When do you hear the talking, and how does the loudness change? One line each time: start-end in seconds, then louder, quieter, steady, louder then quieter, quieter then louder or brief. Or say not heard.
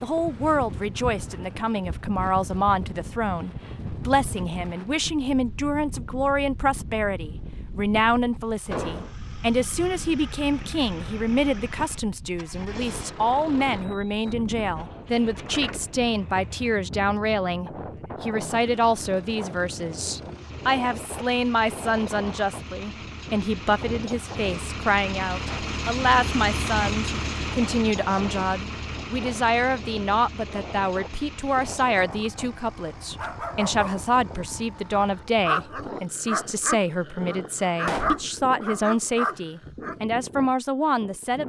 0.0-41.4 steady.